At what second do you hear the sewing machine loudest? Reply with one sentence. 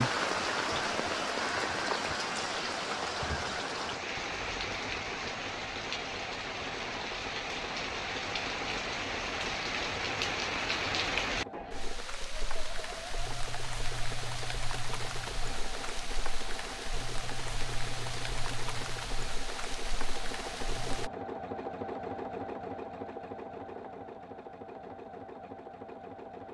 The volume of the sewing machine peaks at 22 seconds.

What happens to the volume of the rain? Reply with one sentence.
The volume of the rain goes down.